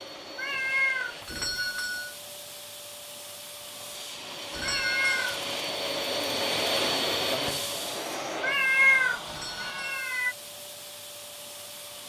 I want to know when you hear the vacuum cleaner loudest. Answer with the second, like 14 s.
7 s.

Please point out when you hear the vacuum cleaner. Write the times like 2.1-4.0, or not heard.
0.0-12.0.